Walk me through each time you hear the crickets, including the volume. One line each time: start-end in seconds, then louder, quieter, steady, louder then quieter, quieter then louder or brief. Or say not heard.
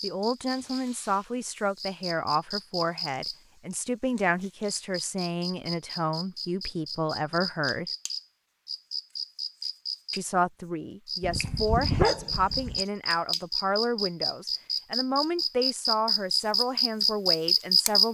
0.0-18.0 louder.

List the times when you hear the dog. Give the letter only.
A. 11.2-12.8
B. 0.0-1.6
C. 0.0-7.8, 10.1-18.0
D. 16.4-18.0
A.